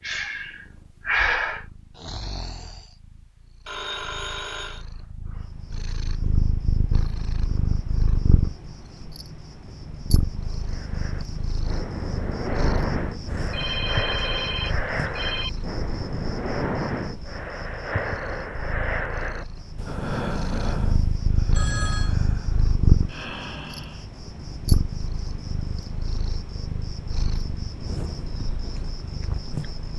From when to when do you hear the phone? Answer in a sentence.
You can hear the phone from 3.6 to 4.8 s, from 13.5 to 15.5 s and from 21.5 to 22.1 s.